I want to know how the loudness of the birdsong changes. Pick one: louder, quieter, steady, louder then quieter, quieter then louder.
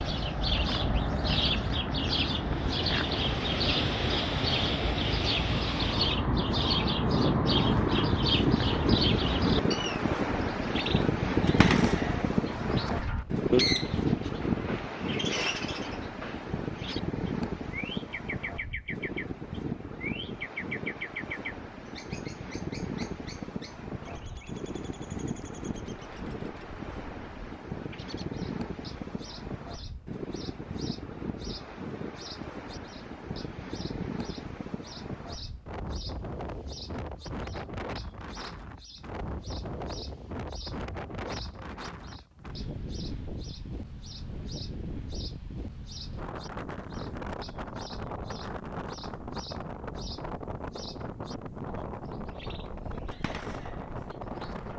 quieter.